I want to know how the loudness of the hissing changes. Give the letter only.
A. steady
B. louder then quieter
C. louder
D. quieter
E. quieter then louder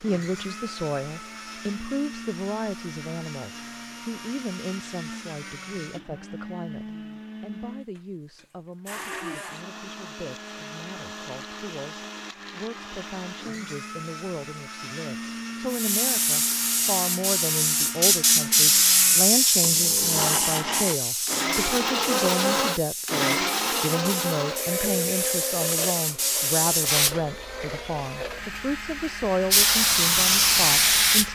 E.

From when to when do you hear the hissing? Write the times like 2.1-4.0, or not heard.
15.7-31.3.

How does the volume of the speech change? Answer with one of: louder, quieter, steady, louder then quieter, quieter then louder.
quieter then louder.